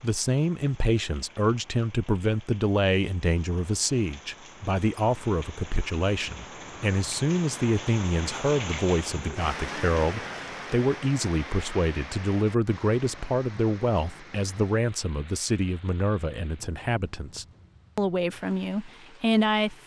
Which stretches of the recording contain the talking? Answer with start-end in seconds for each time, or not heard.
0.0-19.8.